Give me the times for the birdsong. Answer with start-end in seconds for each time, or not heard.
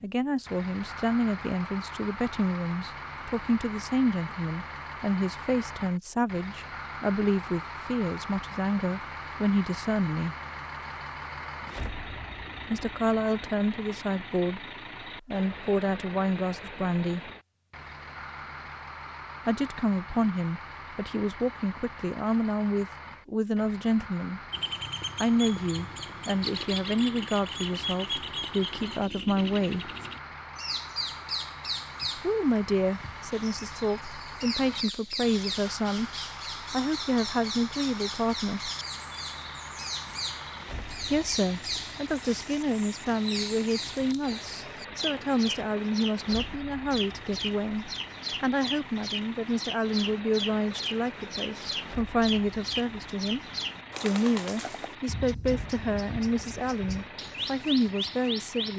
24.5-58.7.